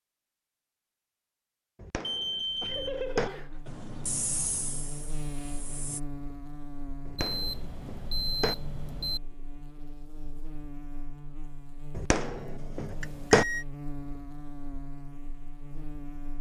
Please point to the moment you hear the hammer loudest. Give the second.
13 s.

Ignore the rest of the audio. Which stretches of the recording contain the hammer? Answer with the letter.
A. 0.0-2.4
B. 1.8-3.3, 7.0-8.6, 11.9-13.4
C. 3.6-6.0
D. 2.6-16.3
B.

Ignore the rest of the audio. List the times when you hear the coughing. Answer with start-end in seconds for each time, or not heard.
not heard.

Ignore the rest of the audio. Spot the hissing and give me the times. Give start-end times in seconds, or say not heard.
3.6-6.0.